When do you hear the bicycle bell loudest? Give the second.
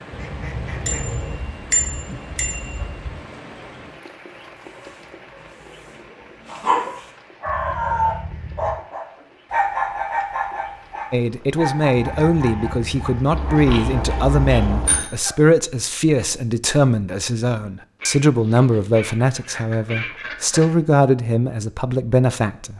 2 s.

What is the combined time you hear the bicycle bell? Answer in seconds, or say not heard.
4 s.